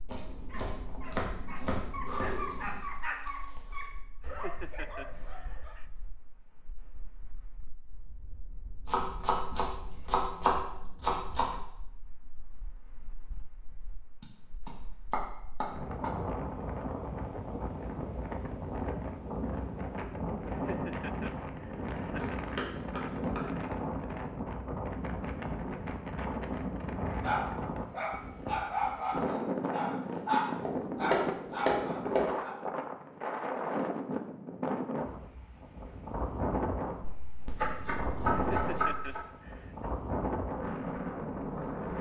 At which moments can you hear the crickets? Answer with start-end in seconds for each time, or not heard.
not heard.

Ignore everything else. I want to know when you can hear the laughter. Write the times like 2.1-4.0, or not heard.
4.2-5.8, 20.4-22.4, 38.3-39.9.